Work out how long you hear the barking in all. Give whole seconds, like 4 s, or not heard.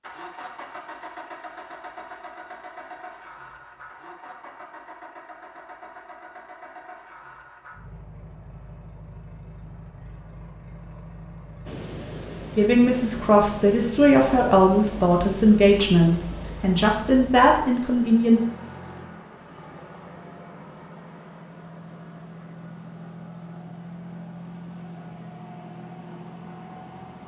not heard.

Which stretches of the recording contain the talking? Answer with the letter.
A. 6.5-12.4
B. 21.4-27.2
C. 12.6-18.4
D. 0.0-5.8
C.